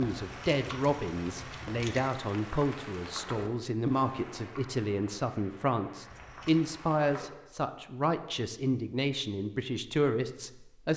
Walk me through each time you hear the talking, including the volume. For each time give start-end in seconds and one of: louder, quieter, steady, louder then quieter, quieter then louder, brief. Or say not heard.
0.0-10.9 steady.